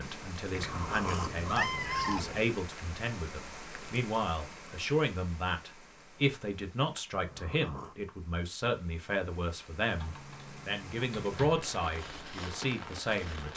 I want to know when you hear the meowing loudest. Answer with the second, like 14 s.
2 s.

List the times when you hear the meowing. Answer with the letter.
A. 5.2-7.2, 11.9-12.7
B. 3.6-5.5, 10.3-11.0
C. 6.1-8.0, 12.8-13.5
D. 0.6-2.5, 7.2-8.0
D.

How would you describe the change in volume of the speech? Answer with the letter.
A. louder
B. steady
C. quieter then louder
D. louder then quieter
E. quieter
B.